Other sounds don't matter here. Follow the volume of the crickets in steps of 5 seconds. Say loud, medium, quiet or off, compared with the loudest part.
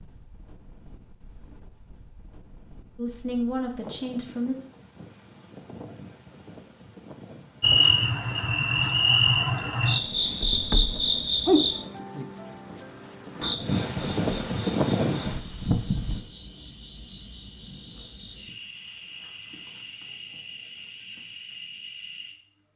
off, loud, loud, quiet, quiet.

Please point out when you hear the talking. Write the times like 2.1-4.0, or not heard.
3.0-4.5.